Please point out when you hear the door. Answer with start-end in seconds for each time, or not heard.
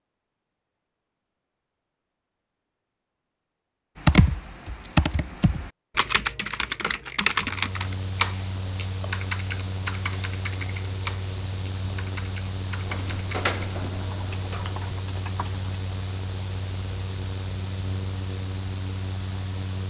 12.8-15.0.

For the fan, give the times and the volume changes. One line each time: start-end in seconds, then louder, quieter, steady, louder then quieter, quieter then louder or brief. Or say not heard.
7.3-19.8 steady.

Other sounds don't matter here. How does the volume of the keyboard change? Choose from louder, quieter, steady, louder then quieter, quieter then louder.
quieter.